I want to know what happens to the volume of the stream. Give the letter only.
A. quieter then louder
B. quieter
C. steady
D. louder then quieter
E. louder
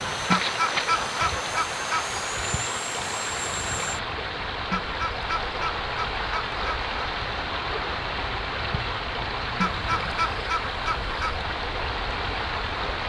C.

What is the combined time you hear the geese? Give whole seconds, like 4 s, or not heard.
6 s.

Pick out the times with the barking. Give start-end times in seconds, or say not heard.
not heard.